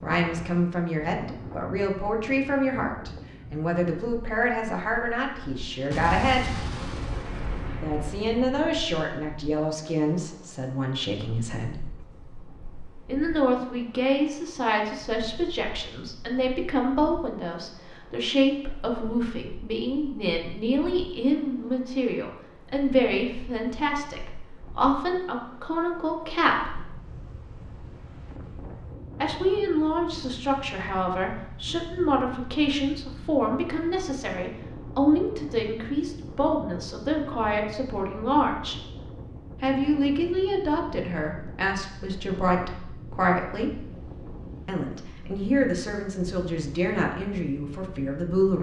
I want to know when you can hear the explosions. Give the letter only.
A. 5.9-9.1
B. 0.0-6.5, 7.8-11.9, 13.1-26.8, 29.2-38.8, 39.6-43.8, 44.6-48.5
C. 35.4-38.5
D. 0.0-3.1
A.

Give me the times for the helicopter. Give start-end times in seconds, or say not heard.
not heard.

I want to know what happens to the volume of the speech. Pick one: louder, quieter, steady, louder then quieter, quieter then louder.
steady.